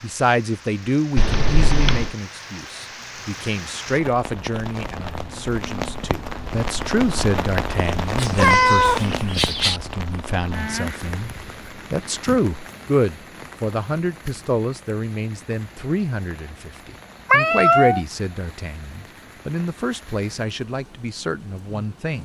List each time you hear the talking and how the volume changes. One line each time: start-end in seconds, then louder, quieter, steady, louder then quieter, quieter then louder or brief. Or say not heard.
0.0-22.2 steady.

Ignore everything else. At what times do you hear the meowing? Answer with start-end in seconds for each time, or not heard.
1.1-2.1, 8.2-9.8, 17.3-18.0.